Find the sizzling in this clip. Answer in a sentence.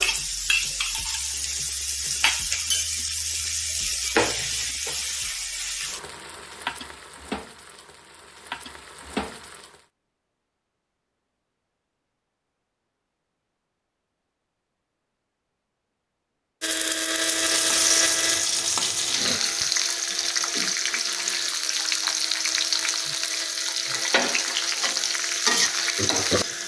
The sizzling can be heard from 0.0 to 9.8 s and from 17.1 to 26.6 s.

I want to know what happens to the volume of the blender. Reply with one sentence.
The volume of the blender goes down.